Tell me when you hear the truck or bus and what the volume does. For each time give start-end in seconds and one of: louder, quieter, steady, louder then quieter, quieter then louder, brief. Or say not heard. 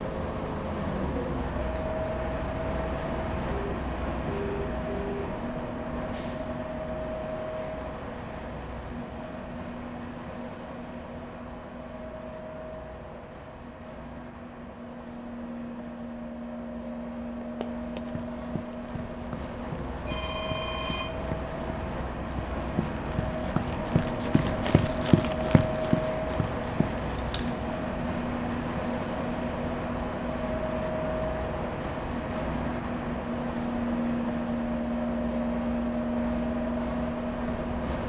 0.0-38.0 quieter then louder.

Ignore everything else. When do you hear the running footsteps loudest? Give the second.
25 s.